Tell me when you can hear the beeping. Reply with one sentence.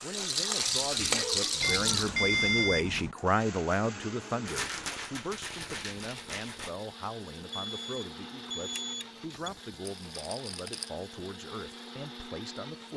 You can hear the beeping from 1.6 to 3.1 s and from 7.5 to 9.5 s.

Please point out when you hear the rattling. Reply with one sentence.
You can hear the rattling from 0.1 to 2.1 s, from 4.5 to 6.8 s and from 9.8 to 10.9 s.